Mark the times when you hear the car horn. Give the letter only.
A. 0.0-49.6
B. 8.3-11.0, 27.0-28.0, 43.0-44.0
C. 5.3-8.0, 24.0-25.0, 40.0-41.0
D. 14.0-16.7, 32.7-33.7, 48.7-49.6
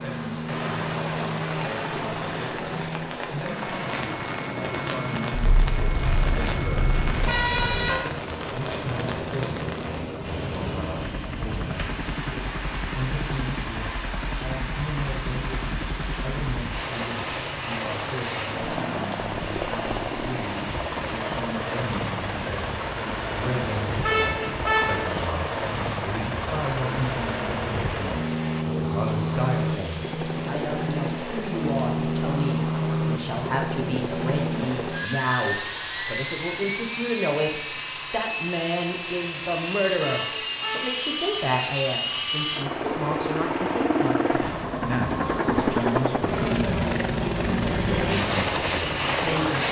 C.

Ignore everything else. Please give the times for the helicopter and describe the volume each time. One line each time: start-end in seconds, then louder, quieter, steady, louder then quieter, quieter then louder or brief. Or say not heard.
0.0-49.6 louder.